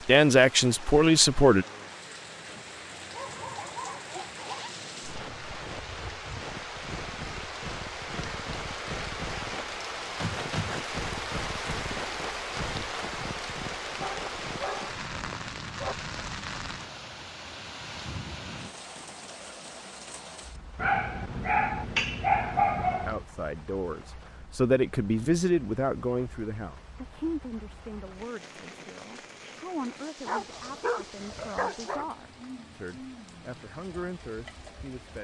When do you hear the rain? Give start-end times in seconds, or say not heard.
0.0-35.1.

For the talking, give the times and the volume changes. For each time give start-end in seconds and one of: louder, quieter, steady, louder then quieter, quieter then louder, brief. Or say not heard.
0.1-1.6 brief
22.9-35.1 quieter.